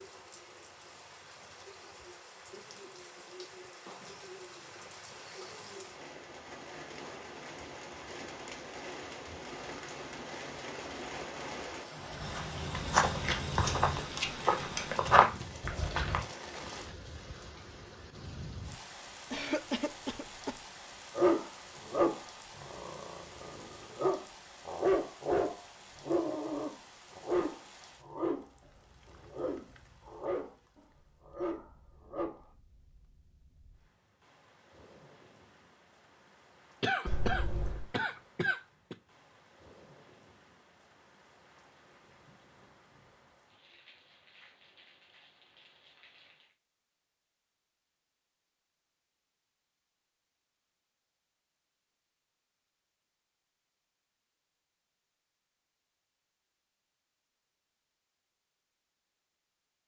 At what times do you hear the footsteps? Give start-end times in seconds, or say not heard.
12.2-16.2.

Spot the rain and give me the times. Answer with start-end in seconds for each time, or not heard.
0.0-46.5.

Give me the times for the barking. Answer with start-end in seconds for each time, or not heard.
21.1-32.5.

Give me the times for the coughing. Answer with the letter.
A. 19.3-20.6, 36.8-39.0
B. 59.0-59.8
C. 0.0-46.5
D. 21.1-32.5
A.